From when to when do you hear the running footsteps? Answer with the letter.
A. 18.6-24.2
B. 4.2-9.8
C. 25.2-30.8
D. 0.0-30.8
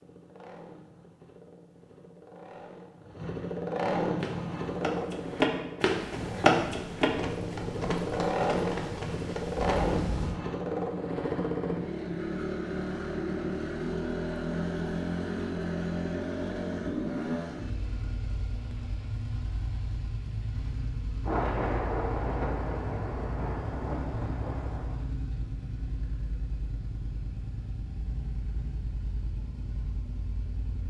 B.